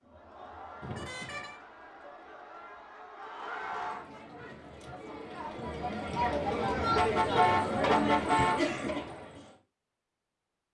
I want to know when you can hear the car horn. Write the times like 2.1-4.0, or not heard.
0.8-1.6, 7.0-8.9.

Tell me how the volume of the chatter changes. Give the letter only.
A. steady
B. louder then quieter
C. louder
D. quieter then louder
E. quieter
C.